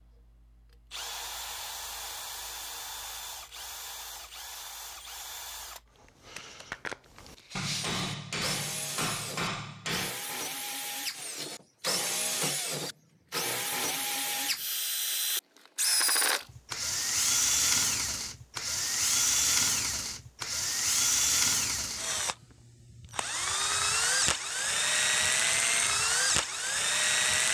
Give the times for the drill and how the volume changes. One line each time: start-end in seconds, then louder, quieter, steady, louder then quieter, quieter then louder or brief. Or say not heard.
0.0-27.4 louder.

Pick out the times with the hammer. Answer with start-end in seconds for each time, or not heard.
7.5-10.2.